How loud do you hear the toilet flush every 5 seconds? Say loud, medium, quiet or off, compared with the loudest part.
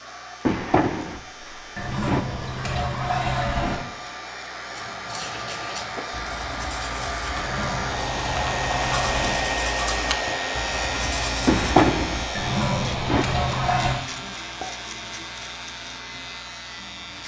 loud, medium, loud, off.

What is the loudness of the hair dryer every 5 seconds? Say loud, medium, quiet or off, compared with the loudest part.
medium, loud, loud, quiet.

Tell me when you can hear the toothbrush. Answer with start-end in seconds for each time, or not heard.
4.8-12.2.